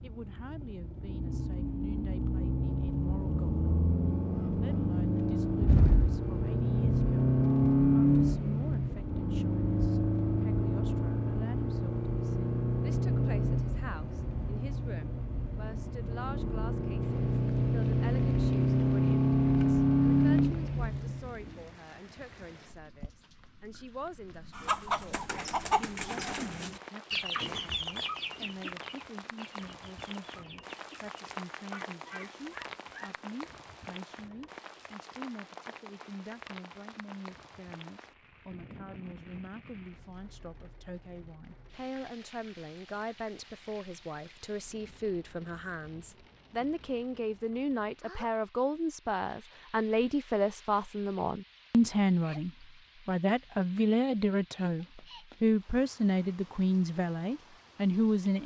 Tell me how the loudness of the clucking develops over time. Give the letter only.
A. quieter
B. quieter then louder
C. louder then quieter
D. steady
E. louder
A.